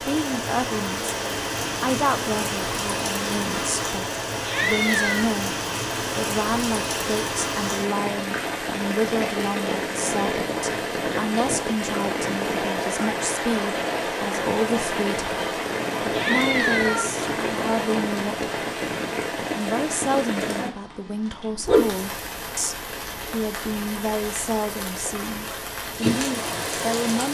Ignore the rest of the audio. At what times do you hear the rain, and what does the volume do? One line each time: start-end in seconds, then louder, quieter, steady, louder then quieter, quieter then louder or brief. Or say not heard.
0.0-27.2 steady.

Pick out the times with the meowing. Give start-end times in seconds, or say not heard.
4.5-5.3, 16.1-17.1.